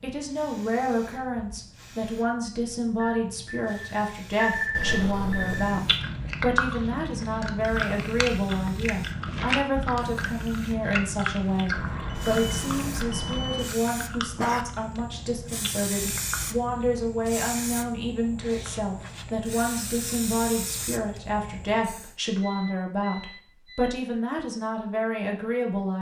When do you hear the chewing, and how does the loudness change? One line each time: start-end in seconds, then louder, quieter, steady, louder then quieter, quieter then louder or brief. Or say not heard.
5.5-17.1 quieter.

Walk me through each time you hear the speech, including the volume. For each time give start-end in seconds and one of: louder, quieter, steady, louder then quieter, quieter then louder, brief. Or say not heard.
0.0-25.9 steady.